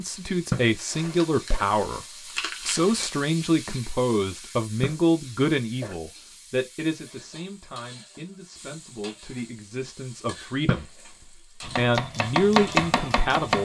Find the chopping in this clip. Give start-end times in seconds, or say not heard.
11.6-13.6.